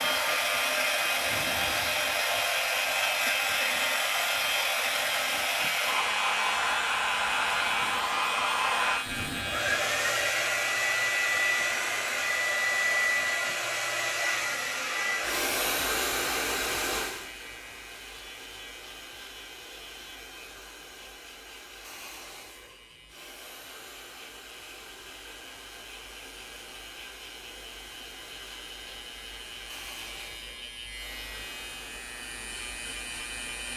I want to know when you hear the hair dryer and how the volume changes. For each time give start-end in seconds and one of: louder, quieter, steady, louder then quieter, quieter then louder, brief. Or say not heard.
0.0-33.7 quieter.